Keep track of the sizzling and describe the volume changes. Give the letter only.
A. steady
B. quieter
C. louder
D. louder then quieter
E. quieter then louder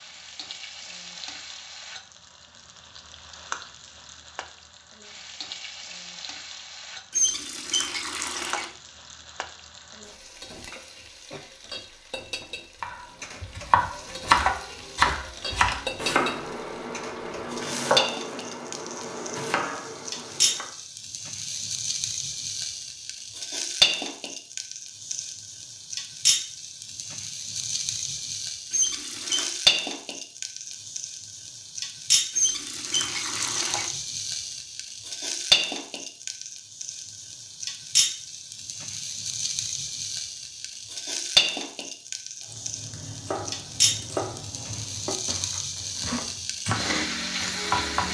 C.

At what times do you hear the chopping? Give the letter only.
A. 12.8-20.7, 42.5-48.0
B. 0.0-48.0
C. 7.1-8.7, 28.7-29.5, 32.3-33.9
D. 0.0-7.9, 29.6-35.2
A.